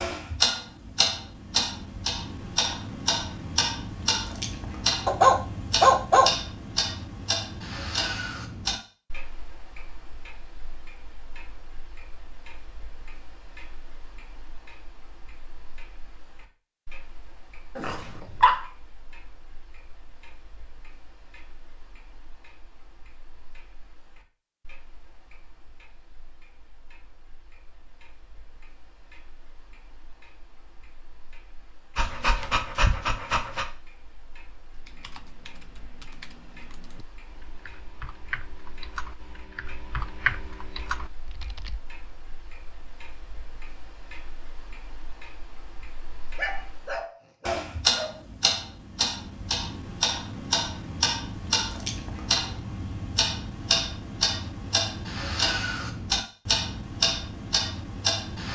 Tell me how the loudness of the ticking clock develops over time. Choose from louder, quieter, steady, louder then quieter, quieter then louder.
quieter then louder.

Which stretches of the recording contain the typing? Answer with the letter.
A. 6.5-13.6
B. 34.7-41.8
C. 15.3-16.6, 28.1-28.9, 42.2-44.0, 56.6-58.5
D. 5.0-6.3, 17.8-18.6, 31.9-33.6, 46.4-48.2
B.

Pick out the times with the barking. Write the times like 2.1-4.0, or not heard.
5.0-6.3, 17.8-18.6, 31.9-33.6, 46.4-48.2.